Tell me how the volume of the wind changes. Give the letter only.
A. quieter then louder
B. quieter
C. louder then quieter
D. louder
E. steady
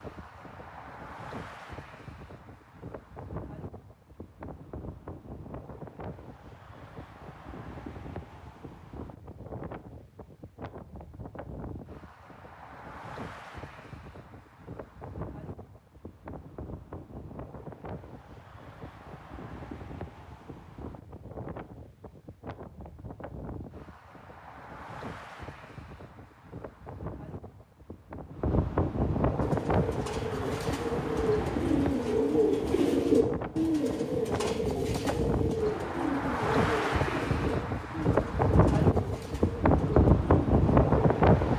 D.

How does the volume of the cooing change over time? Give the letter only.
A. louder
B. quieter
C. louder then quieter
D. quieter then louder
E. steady
C.